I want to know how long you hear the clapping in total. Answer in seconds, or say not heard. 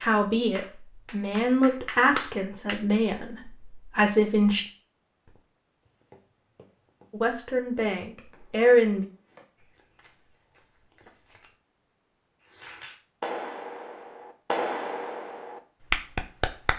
7 s.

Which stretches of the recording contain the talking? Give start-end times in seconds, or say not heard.
0.0-4.7, 7.1-9.1.